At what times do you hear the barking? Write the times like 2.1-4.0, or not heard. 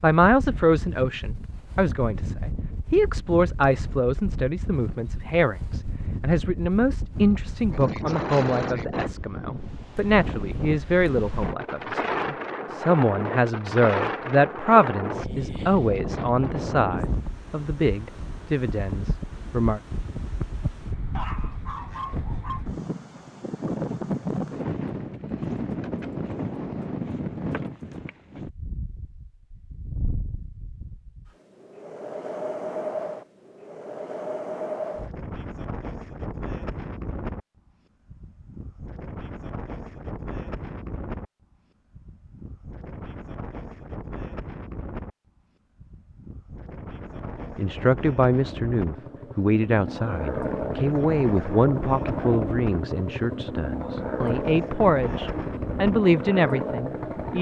21.1-22.6.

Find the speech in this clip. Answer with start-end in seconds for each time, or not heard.
0.0-19.8, 47.5-57.3.